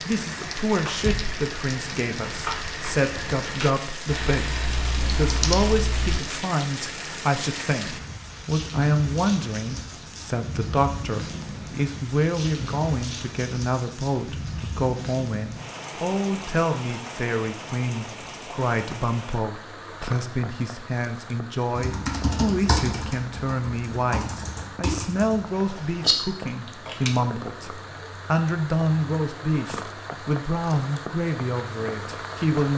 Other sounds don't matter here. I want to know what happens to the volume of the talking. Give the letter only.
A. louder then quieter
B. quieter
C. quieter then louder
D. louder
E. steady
E.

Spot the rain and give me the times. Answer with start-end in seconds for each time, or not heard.
0.0-32.7.